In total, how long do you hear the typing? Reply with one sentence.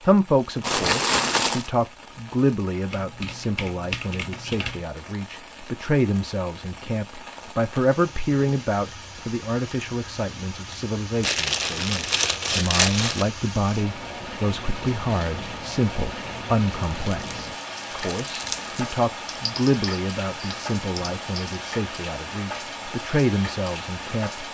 You can hear the typing for 4 seconds altogether.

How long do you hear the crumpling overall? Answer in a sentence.
The crumpling can be heard for 5 seconds in total.